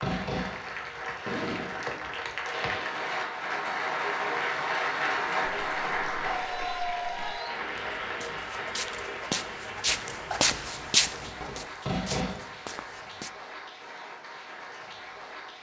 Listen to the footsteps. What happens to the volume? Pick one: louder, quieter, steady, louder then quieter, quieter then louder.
louder then quieter.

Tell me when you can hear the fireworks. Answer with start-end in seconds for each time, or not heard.
0.0-3.7, 9.7-12.6.